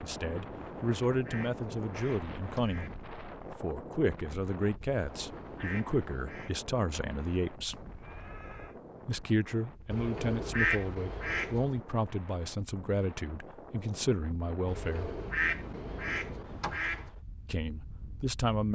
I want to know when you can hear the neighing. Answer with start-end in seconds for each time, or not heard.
7.7-8.8.